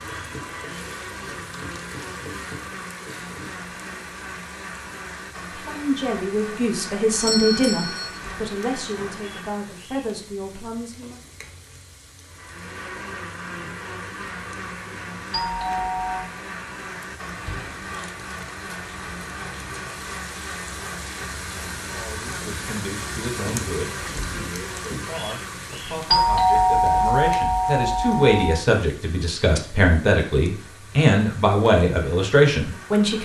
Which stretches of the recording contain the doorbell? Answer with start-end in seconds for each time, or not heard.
7.1-8.2, 15.3-16.3, 26.1-28.6.